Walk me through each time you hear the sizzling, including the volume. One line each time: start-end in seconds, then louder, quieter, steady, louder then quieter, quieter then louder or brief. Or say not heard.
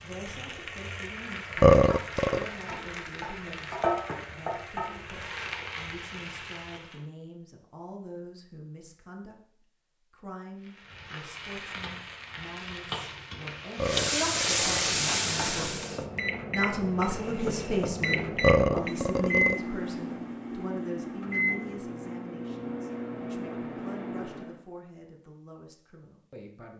0.0-7.0 louder then quieter
10.6-16.1 louder.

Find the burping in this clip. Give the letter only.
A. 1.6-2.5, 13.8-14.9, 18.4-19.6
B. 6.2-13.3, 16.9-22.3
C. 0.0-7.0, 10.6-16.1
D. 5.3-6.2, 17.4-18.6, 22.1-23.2
A.